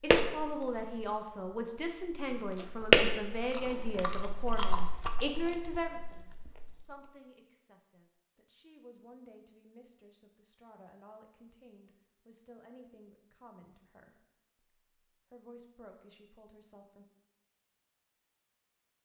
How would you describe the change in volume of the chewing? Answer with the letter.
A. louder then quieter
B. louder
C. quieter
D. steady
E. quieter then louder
A.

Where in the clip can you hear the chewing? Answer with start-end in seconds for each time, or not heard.
0.0-7.1.